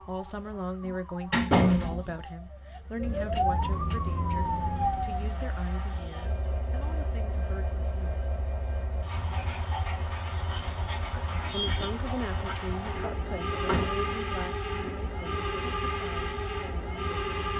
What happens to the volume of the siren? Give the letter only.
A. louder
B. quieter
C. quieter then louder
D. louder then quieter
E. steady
A.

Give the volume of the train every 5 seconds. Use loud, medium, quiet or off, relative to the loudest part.
quiet, medium, loud, loud.